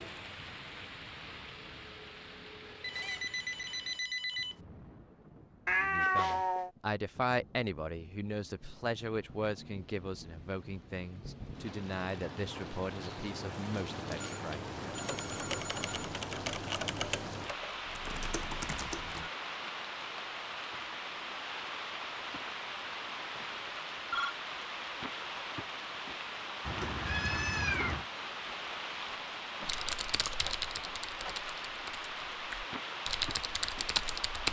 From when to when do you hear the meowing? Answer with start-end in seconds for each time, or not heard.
5.7-6.7, 26.6-28.1.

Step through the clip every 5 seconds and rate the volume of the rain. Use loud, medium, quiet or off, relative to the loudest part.
medium, quiet, loud, loud, loud, loud, loud.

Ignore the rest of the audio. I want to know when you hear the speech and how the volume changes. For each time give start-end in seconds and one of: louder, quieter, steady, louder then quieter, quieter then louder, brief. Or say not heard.
5.8-14.8 quieter.